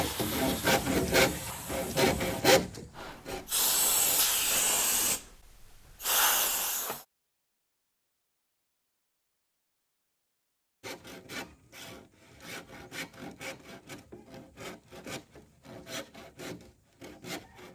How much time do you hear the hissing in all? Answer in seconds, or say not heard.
7 s.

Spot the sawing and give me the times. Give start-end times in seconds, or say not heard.
0.0-4.7, 10.8-17.6.